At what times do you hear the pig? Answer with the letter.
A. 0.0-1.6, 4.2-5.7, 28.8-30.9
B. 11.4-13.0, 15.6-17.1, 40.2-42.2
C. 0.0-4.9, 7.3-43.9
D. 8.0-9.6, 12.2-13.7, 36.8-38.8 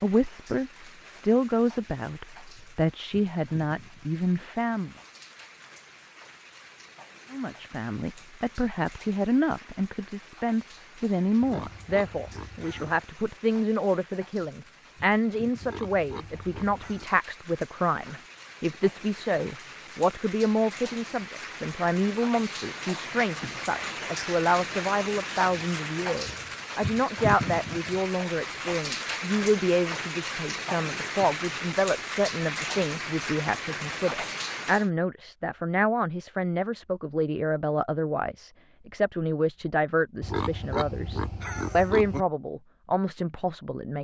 B.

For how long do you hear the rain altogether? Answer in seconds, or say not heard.
35 s.